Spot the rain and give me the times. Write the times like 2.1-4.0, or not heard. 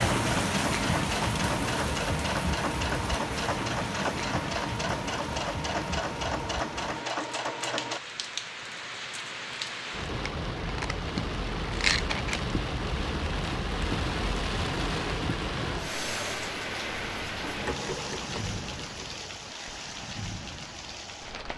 0.0-21.5.